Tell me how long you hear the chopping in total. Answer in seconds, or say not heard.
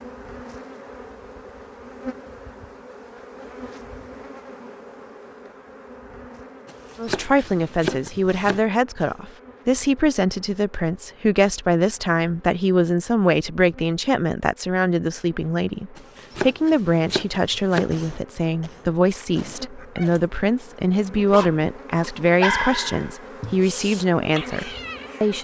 4 s.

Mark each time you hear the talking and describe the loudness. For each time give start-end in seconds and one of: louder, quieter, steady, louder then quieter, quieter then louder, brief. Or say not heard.
7.0-25.3 steady.